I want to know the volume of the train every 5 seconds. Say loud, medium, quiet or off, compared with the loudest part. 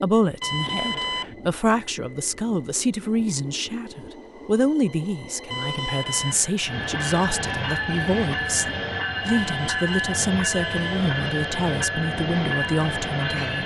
quiet, loud, loud.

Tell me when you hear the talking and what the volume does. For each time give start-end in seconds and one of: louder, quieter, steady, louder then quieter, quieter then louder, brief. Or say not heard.
0.0-13.6 steady.